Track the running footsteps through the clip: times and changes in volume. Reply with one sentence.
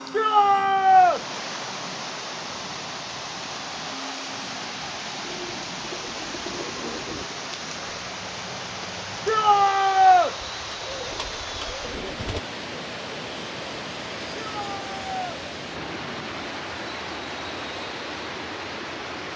The running footsteps can't be heard in this clip.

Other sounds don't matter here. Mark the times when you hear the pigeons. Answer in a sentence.
You can hear the pigeons from 5.2 to 7.2 s and from 10.4 to 12.4 s.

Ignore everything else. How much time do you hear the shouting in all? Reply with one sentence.
You can hear the shouting for 3 seconds altogether.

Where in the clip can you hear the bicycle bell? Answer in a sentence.
The bicycle bell can't be heard in this clip.